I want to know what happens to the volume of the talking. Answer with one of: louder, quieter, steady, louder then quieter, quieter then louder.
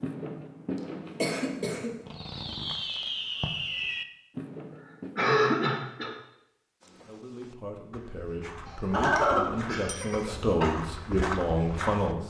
louder.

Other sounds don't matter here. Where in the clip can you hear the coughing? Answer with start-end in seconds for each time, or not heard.
1.2-2.0, 5.2-6.1, 8.7-10.7.